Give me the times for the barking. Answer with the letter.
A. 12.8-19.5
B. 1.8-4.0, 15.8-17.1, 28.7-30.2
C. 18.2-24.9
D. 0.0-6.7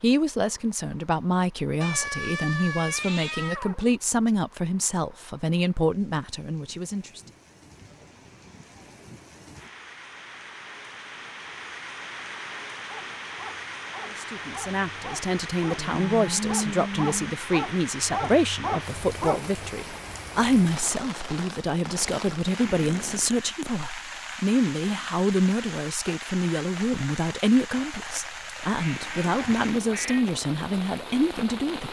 A.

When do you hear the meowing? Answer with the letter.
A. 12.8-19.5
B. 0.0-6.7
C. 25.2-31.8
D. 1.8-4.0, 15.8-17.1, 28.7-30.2
D.